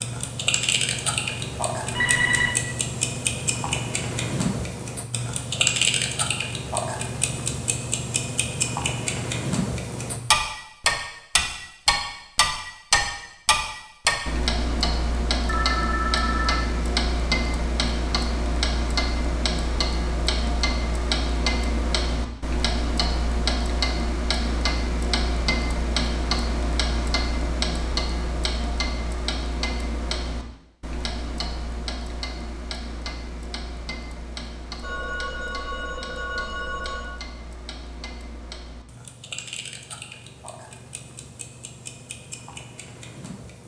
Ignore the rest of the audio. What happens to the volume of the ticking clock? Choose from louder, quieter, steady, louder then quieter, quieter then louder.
quieter.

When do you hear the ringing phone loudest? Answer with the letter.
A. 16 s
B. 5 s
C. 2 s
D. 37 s
C.